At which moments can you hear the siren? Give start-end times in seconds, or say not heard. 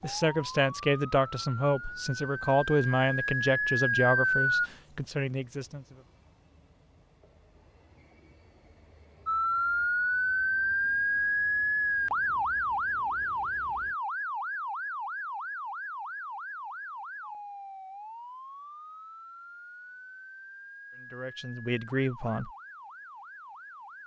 0.0-4.7, 9.2-24.0.